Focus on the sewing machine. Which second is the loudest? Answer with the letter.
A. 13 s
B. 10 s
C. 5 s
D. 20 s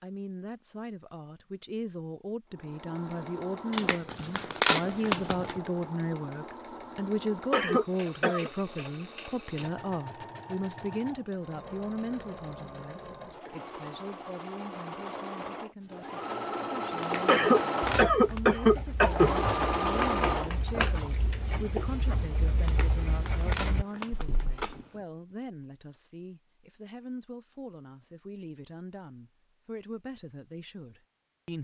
D.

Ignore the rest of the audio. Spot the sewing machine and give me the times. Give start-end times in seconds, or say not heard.
2.5-21.9.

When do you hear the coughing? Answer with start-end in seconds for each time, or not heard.
7.5-8.5, 17.2-19.3.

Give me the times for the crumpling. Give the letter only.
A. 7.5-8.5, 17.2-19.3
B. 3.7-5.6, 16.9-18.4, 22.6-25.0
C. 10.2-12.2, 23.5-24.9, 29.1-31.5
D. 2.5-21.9
B.